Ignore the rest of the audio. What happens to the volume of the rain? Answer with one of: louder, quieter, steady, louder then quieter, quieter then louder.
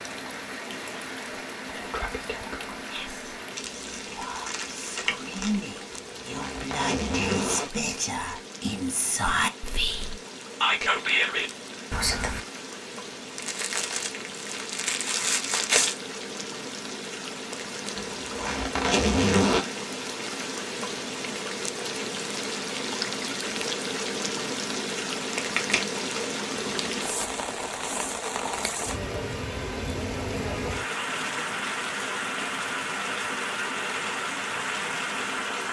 louder.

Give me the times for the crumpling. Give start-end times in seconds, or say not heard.
3.5-5.6, 13.3-15.9, 25.4-27.1.